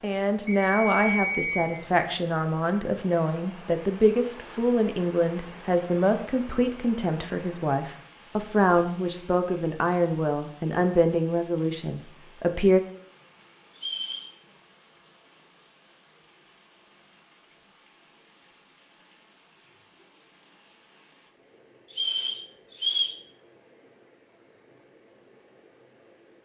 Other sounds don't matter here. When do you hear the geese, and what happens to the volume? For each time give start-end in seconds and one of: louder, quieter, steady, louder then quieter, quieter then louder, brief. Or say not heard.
not heard.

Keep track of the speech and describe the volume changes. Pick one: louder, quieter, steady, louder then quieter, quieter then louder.
steady.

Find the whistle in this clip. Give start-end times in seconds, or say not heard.
0.5-1.8, 13.8-14.3, 21.9-23.2.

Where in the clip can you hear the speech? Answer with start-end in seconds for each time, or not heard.
0.0-12.8.